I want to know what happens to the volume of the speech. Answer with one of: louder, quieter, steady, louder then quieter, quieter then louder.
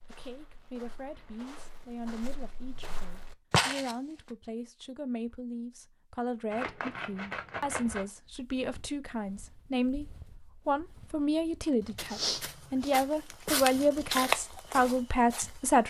louder.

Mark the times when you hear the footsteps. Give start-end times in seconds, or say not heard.
0.0-4.0, 8.2-15.8.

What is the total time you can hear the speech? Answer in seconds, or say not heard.
15 s.